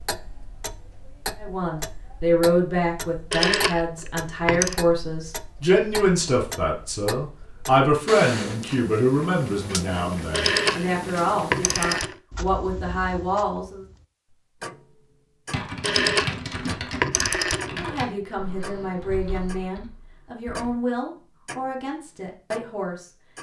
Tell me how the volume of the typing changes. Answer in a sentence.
The volume of the typing goes down.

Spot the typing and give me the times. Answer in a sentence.
You can hear the typing from 15.5 to 20.7 s.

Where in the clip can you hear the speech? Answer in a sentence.
You can hear the speech from 1.4 to 13.8 s and from 17.8 to 23.1 s.